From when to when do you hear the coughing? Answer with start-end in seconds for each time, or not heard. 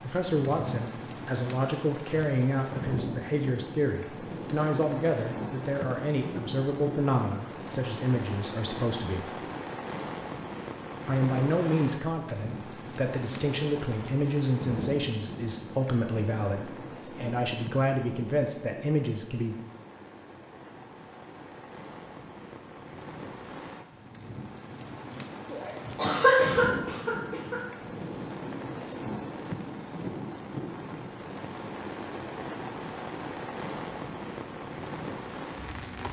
25.5-27.6.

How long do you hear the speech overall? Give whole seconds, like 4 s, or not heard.
18 s.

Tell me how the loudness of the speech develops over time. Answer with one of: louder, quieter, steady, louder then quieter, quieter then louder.
steady.